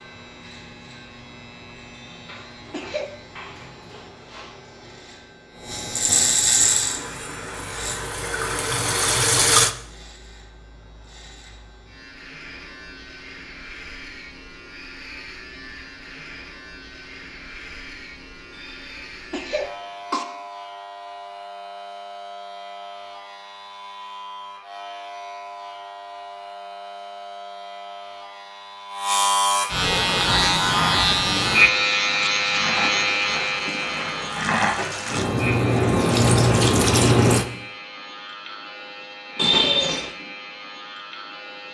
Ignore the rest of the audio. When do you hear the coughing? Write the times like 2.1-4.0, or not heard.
1.9-3.1, 18.6-20.2, 39.4-40.1.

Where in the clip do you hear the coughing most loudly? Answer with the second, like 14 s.
40 s.